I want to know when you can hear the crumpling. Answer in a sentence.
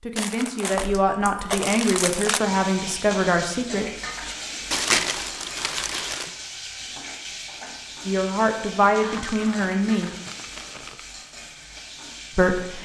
The crumpling can be heard from 0.1 to 2.4 s, from 4.7 to 6.3 s and from 9.0 to 11.0 s.